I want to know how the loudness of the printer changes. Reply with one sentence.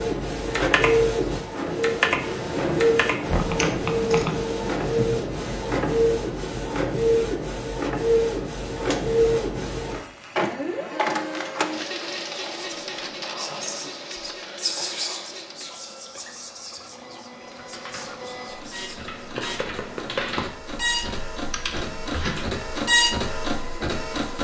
The loudness of the printer goes down, then up.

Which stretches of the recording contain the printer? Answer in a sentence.
You can hear the printer from 0.0 to 24.3 s.